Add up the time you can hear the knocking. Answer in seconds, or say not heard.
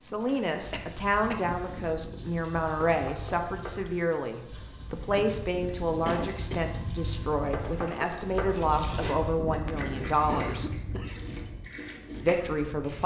2 s.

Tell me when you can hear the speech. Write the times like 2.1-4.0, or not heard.
0.0-10.7, 12.2-13.0.